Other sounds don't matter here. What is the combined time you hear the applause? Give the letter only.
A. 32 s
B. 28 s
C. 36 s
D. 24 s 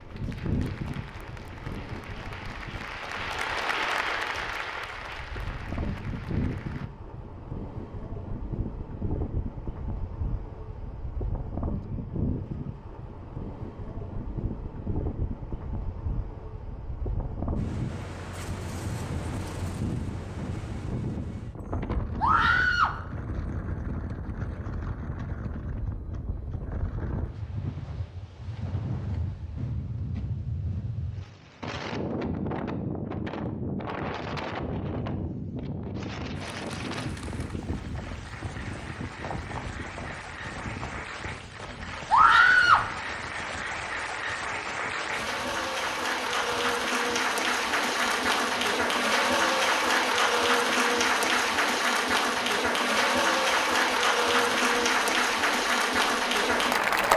B.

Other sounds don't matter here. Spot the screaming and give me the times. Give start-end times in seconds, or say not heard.
22.2-22.9, 42.1-42.9.